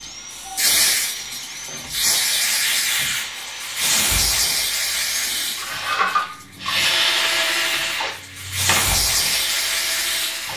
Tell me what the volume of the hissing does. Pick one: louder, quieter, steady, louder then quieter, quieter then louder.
quieter then louder.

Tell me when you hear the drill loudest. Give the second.
7 s.